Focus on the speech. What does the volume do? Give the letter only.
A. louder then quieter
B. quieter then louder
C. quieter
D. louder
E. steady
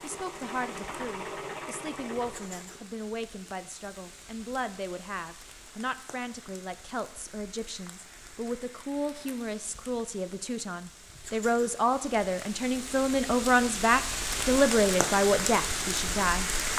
D.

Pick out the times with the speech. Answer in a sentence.
The speech can be heard from 0.0 to 16.6 s.